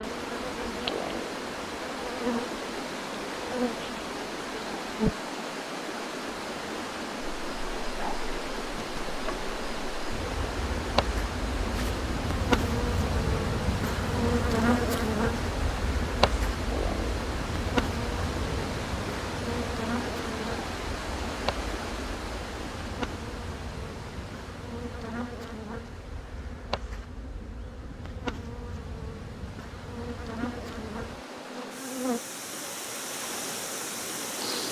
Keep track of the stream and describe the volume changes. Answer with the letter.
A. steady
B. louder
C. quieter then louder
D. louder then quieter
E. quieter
E.